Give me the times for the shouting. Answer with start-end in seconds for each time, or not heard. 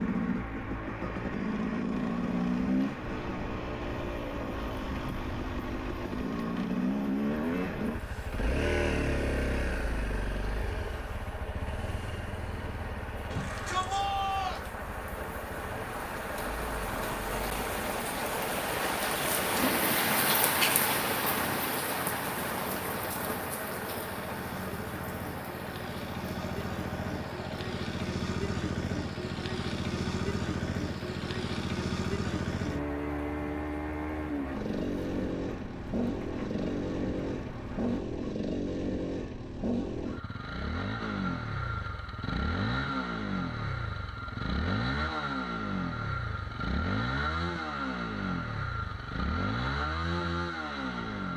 13.3-14.7.